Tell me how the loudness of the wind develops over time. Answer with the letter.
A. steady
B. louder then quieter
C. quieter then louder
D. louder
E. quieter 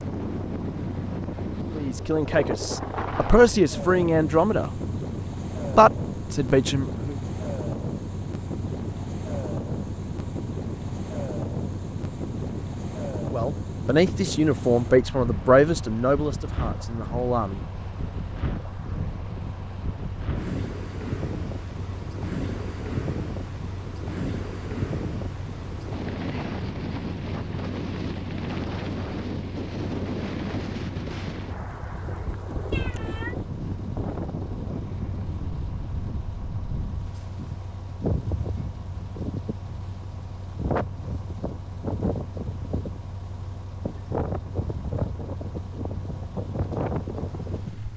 A.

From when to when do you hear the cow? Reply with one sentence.
You can't hear the cow here.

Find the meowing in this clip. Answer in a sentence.
You can hear the meowing from 32.7 to 33.4 s.